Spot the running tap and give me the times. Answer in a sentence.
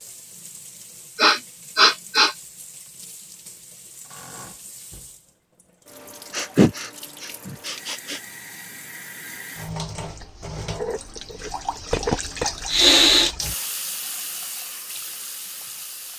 You can hear the running tap from 0.0 to 16.1 s.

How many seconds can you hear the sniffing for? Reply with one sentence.
You can hear the sniffing for 4 seconds altogether.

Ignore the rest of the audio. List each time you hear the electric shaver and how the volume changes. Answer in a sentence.
You can't hear the electric shaver here.